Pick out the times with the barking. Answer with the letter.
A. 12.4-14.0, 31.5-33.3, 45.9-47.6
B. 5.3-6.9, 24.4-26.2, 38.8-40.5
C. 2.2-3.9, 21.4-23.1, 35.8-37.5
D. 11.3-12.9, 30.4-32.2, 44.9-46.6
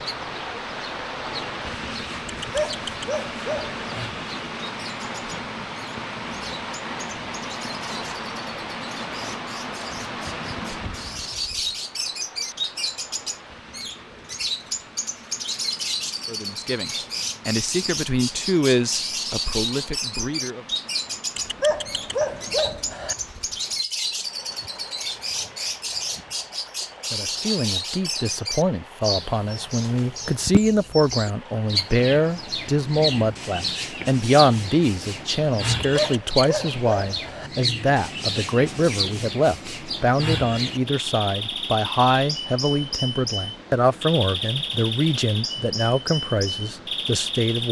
C.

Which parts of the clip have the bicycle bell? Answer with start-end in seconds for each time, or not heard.
not heard.